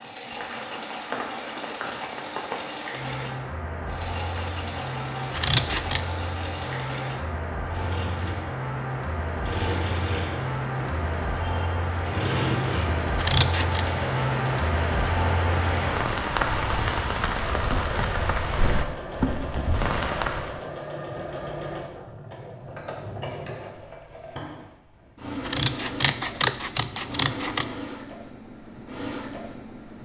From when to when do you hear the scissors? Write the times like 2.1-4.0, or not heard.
5.3-6.0, 13.2-13.8, 25.4-27.7.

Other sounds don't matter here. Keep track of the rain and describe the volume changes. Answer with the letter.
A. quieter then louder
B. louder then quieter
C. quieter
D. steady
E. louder
E.